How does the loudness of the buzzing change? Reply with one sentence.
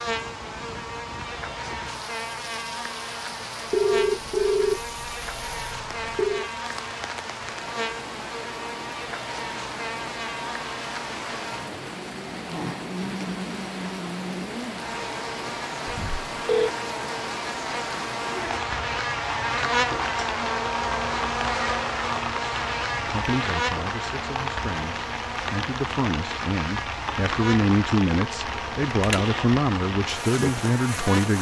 The loudness of the buzzing goes up, then down.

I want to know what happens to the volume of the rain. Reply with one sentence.
The volume of the rain goes up.